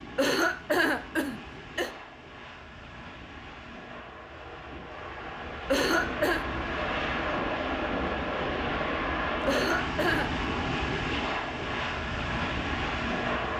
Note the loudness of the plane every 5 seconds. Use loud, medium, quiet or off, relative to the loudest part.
quiet, loud, loud.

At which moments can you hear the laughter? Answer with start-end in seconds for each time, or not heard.
0.1-1.9, 5.7-6.5, 9.4-10.4.